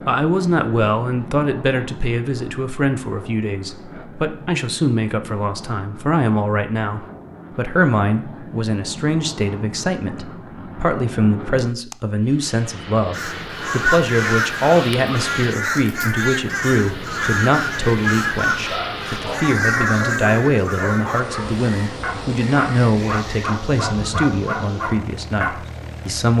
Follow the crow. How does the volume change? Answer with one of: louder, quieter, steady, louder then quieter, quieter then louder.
quieter.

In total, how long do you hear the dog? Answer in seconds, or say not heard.
7 s.